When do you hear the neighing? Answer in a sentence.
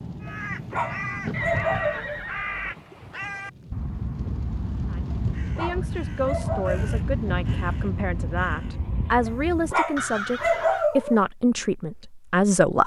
The neighing can be heard from 1.3 to 2.8 s.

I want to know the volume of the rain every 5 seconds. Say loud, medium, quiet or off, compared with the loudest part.
loud, loud, off.